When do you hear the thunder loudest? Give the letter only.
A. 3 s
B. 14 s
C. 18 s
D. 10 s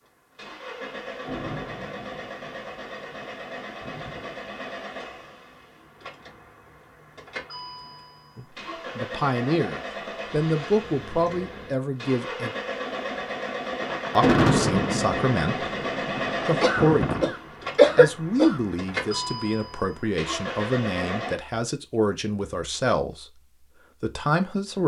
B.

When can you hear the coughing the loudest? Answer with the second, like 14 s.
18 s.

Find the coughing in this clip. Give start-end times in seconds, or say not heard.
16.6-18.6.